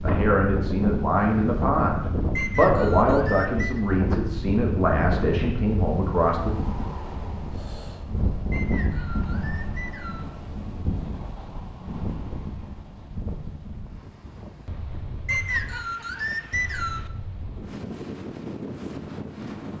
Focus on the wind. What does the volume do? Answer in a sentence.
The loudness of the wind goes down.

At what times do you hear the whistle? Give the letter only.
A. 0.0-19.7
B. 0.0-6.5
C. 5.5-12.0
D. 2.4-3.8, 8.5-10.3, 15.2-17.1
D.